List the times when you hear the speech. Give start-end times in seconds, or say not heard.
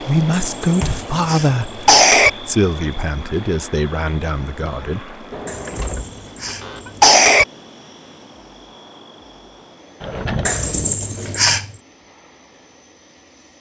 0.0-5.2.